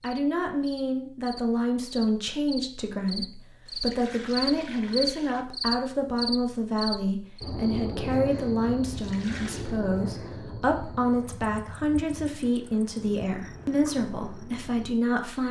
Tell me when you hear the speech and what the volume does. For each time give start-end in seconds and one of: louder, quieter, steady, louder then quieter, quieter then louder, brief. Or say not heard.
0.0-15.4 steady.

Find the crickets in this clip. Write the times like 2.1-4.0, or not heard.
0.0-15.4.